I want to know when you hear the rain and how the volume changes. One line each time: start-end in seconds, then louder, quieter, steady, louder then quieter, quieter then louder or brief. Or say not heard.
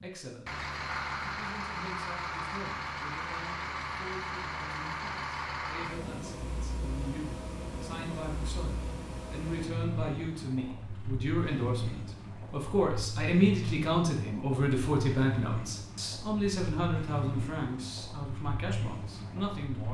not heard.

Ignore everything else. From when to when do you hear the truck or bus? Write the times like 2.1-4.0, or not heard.
0.0-19.8.